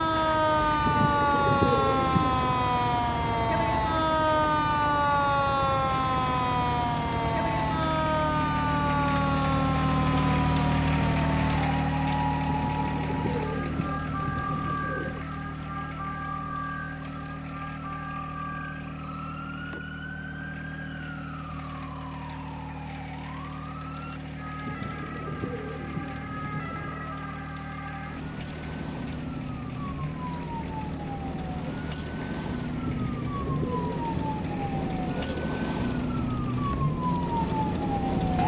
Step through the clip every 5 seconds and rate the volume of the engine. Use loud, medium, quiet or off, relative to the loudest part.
medium, loud, loud, medium, medium, medium, medium, medium.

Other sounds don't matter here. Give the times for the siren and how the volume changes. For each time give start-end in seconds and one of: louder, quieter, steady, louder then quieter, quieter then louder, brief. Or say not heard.
0.0-38.4 quieter then louder.